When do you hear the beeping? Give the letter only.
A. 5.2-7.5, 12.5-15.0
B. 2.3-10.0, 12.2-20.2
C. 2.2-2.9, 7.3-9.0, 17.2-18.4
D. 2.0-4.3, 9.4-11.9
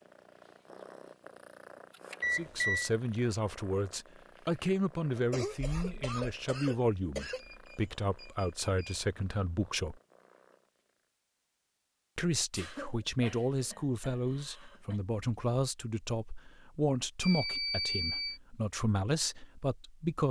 C.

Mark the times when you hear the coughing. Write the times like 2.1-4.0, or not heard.
5.2-7.5, 12.5-15.0.